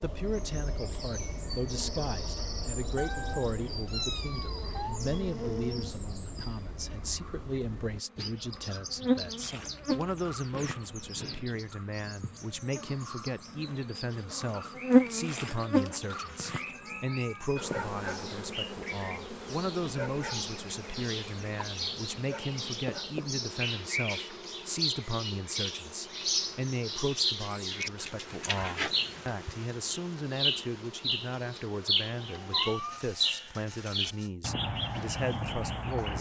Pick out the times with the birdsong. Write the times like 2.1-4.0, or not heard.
0.0-36.1.